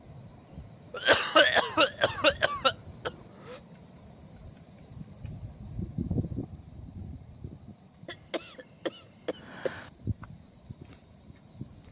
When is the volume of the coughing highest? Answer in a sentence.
The loudest moment of the coughing is at 1 second.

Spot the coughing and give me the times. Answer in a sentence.
The coughing can be heard from 0.9 to 3.5 s and from 8.1 to 9.9 s.